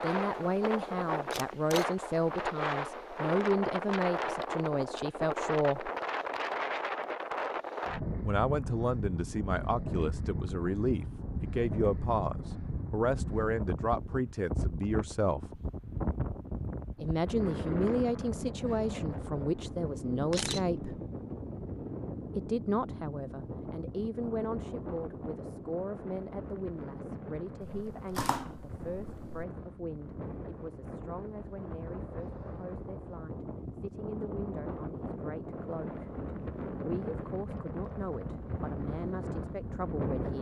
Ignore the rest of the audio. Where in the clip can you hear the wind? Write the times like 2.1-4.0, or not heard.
0.0-40.3.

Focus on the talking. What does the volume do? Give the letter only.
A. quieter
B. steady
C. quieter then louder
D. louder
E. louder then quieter
A.